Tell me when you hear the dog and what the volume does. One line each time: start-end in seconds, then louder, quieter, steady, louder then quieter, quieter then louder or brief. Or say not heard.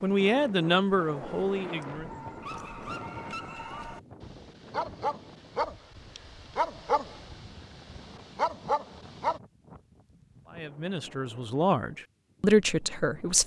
0.9-9.4 louder.